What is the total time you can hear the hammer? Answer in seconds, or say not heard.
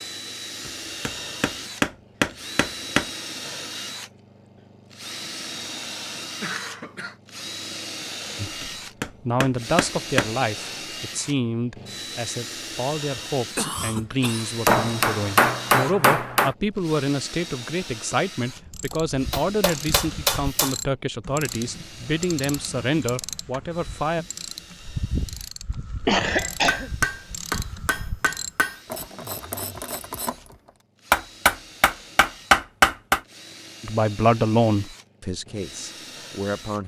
12 s.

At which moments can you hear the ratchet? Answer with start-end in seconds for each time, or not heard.
18.6-30.7.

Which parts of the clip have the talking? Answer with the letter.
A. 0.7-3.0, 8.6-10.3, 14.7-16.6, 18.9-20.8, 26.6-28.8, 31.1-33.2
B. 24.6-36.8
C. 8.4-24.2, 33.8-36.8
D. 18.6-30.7
C.